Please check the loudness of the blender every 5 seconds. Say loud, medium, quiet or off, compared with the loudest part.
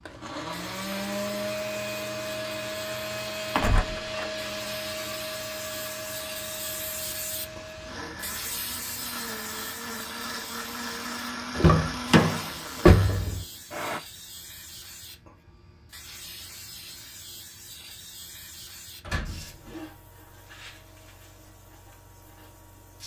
loud, medium, loud, off, off.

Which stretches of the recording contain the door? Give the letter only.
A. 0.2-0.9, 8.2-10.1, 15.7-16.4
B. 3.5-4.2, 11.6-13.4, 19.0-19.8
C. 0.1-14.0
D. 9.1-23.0
B.